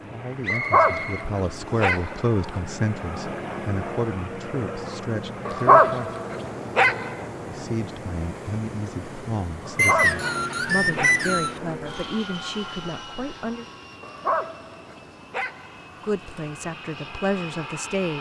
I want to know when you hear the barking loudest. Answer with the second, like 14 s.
6 s.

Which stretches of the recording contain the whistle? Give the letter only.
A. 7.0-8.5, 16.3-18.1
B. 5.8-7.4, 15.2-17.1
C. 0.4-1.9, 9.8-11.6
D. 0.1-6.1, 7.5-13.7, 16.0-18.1
C.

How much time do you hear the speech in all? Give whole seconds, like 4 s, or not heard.
14 s.